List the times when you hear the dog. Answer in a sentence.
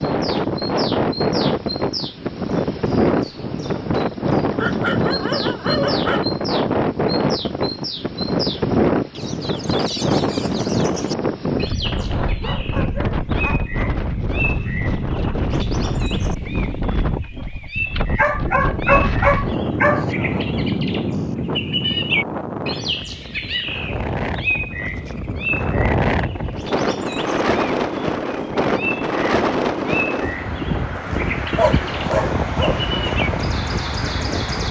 You can hear the dog from 4.5 to 6.3 s, from 12.0 to 14.0 s, from 18.1 to 20.1 s and from 30.9 to 32.8 s.